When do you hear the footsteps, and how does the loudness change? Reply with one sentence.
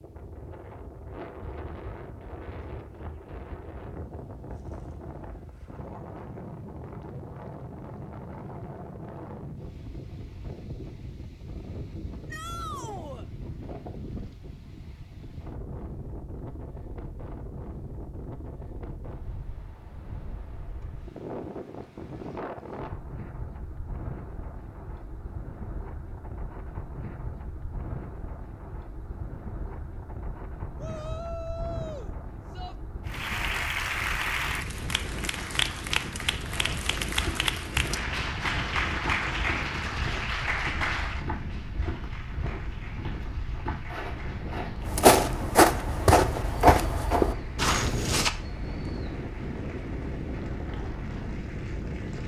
The footsteps can be heard from 36.4 to 48.3 s, getting louder.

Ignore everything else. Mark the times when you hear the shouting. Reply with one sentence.
You can hear the shouting from 12.3 to 13.2 s and from 30.8 to 32.8 s.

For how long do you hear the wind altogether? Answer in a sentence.
You can hear the wind for 52 seconds altogether.